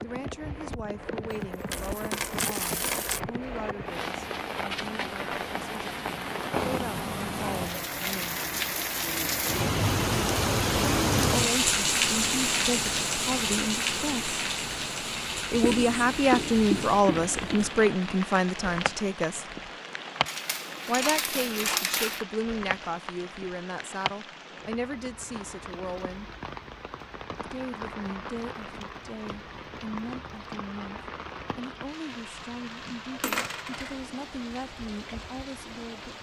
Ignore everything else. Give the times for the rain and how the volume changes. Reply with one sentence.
The rain can be heard from 0.0 to 36.1 s, getting louder then quieter.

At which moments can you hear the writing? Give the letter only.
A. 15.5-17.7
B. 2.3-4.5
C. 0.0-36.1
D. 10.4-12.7
A.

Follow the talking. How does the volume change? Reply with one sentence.
The volume of the talking goes up, then down.